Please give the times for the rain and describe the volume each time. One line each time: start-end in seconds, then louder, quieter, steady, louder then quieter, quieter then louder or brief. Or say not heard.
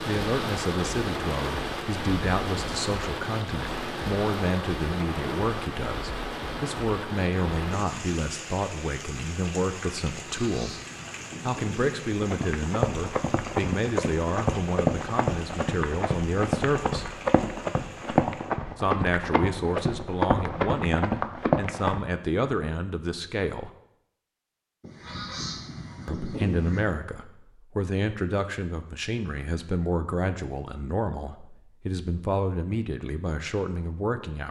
0.0-18.6 quieter.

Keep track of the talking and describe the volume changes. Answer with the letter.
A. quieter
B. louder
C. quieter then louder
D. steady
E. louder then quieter
D.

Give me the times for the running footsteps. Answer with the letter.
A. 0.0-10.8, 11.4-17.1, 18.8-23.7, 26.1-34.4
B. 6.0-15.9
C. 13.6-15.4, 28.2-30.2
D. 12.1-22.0
D.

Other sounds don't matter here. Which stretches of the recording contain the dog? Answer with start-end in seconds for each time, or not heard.
not heard.